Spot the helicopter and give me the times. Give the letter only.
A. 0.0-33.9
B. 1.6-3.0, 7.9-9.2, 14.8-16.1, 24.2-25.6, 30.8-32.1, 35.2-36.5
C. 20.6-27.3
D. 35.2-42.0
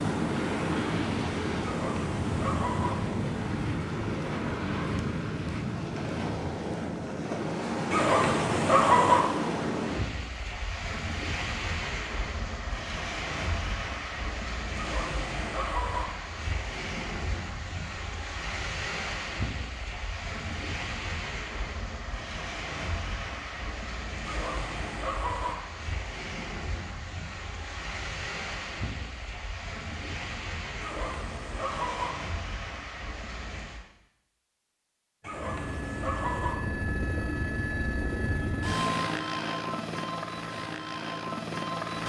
D.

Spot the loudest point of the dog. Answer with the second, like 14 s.
9 s.